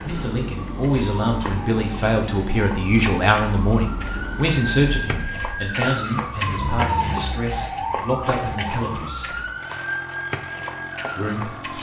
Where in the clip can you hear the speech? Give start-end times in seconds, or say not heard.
0.0-9.3, 11.2-11.7.